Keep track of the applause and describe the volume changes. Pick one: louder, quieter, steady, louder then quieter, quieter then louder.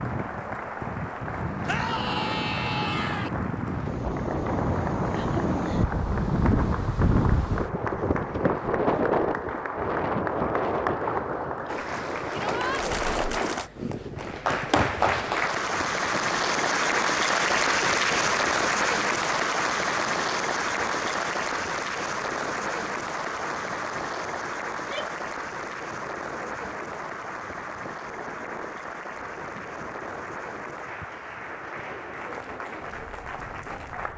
louder then quieter.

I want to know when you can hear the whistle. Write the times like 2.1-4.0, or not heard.
not heard.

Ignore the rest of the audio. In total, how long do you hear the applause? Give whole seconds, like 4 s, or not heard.
34 s.